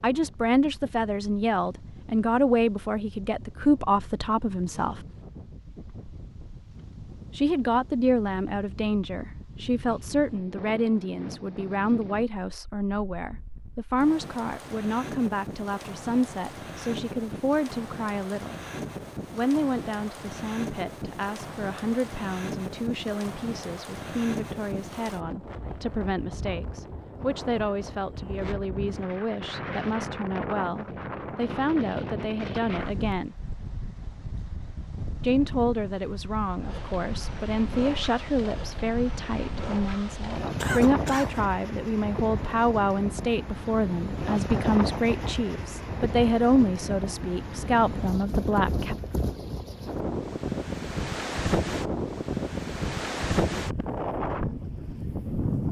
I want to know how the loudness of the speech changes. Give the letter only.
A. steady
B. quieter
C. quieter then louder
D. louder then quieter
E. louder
C.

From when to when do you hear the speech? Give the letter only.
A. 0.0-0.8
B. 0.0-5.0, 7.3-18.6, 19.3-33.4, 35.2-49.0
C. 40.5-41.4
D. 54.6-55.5
B.